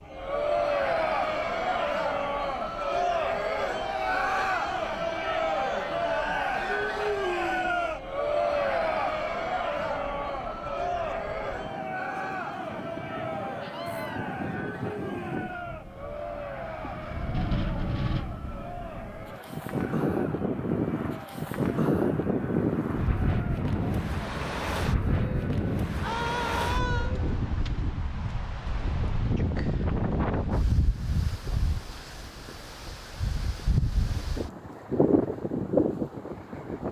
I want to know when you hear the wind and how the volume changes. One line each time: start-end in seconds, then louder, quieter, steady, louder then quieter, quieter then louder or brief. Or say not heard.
0.0-36.8 louder.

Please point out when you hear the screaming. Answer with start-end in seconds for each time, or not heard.
3.8-4.5, 13.6-14.2, 26.0-27.1.